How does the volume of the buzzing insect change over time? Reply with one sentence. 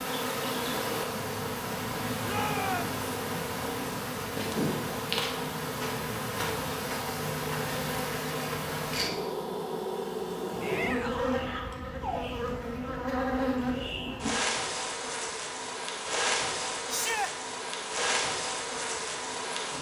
The loudness of the buzzing insect stays about the same.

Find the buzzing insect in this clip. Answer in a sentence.
The buzzing insect can be heard from 0.0 to 19.7 s.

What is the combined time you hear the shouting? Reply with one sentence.
The shouting can be heard for 2 seconds in total.